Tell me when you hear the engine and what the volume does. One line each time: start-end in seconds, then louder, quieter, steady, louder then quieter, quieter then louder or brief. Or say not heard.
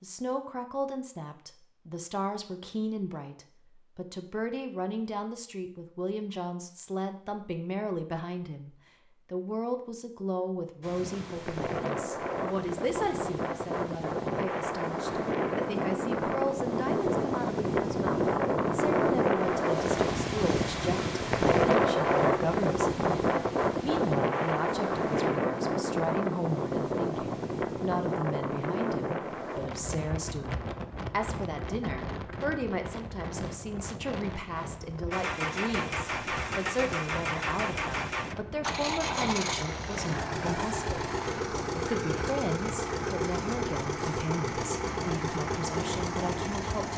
35.1-46.9 steady.